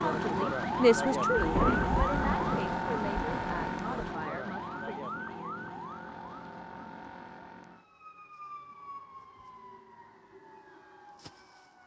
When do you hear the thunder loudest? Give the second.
2 s.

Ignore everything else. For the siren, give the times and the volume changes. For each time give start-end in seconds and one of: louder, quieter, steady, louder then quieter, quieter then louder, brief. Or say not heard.
0.0-11.8 quieter.